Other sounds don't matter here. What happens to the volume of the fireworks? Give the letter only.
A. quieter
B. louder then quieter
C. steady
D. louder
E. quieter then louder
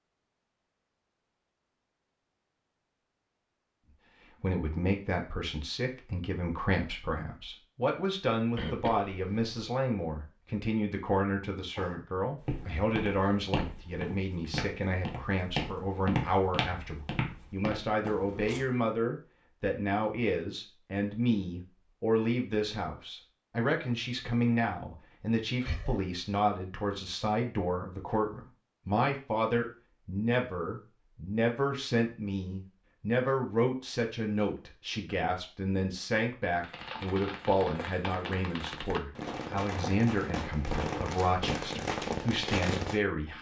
D.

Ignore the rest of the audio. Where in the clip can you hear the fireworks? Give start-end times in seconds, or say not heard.
36.5-43.0.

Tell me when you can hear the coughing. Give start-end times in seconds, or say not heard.
8.6-9.5, 25.6-26.1.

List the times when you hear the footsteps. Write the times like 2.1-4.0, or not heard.
11.8-18.6.